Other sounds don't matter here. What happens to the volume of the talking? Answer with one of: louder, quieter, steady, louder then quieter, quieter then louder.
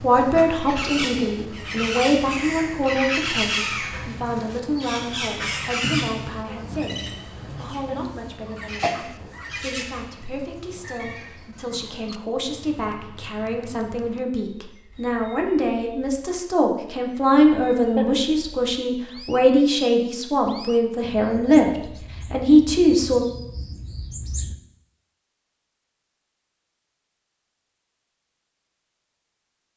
quieter then louder.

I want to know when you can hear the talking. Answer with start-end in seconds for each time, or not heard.
0.0-23.2.